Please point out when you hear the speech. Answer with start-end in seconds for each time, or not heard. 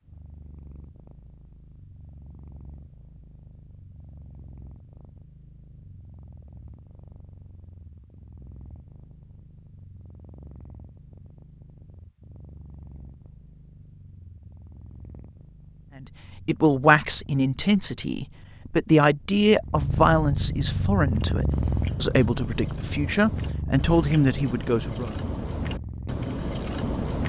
16.0-25.1.